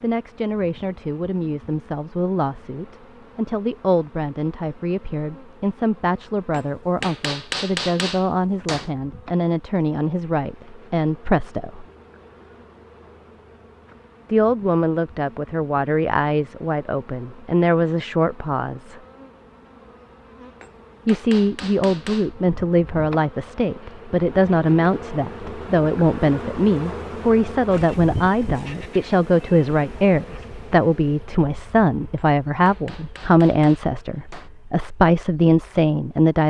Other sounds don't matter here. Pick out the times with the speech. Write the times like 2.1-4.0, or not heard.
0.0-11.8, 14.3-19.0, 21.1-36.4.